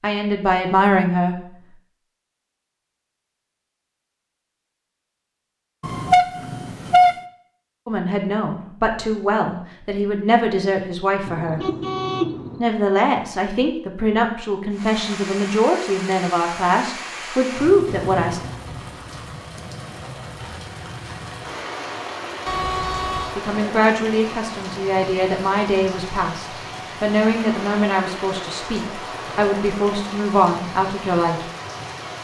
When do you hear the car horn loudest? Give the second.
7 s.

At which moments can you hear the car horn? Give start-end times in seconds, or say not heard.
5.8-7.2, 11.2-12.6, 22.4-23.4.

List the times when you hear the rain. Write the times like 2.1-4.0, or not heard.
14.7-32.2.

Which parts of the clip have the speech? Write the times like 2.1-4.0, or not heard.
0.0-1.4, 7.8-11.6, 12.6-18.4, 23.4-31.4.